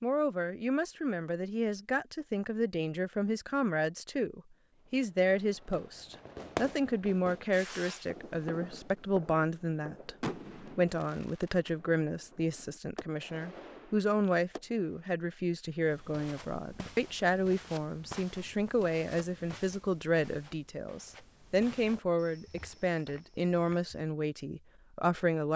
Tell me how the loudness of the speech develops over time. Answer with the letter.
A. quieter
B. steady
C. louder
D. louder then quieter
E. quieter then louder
B.